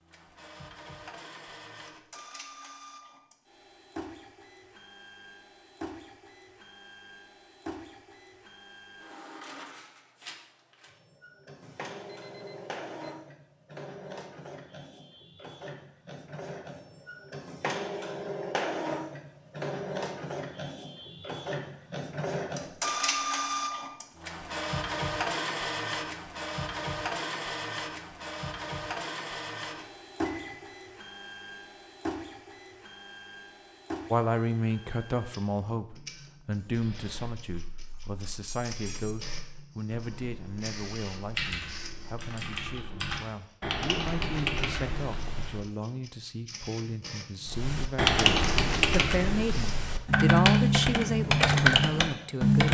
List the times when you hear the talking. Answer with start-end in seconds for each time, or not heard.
34.1-52.6.